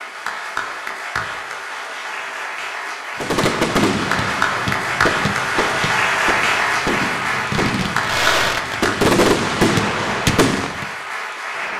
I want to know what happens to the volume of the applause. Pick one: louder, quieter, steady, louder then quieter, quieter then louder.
louder then quieter.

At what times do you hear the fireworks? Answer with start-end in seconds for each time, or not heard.
3.2-10.8.